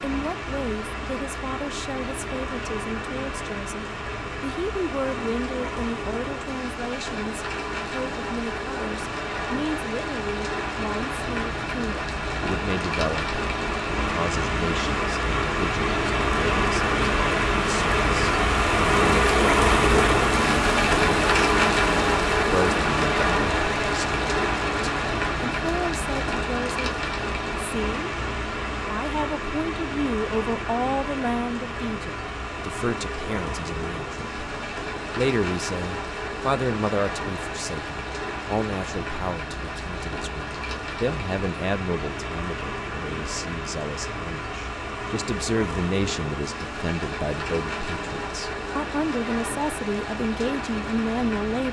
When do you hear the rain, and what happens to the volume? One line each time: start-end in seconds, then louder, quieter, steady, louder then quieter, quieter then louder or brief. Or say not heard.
0.0-51.6 louder then quieter.